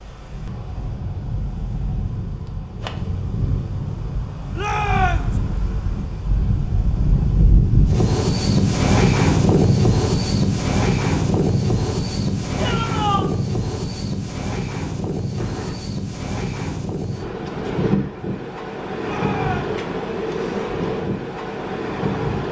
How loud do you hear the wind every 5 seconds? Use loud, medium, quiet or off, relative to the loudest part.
medium, loud, loud, medium, medium.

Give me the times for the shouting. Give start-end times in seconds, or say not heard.
4.5-5.3, 12.6-13.2, 19.0-19.8.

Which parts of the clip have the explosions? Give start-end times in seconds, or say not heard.
15.3-15.8.